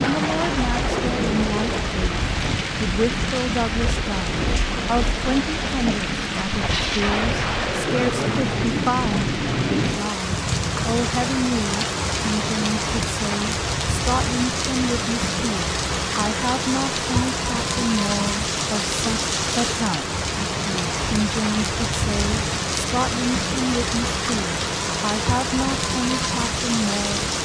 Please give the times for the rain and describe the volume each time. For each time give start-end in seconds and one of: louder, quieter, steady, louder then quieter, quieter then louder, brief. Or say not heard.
0.0-27.4 steady.